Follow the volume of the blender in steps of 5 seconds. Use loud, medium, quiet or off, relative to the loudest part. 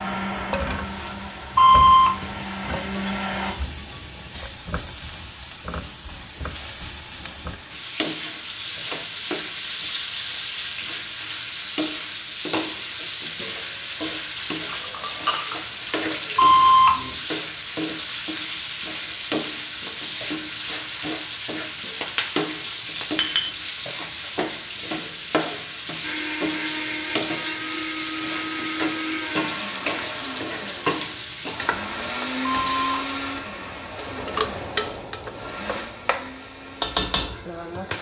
loud, off, off, off, off, loud, loud, medium.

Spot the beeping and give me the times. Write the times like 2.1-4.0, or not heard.
1.6-2.1, 16.4-17.1, 32.4-33.1.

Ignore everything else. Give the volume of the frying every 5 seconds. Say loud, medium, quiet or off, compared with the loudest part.
medium, loud, loud, loud, loud, loud, loud, loud.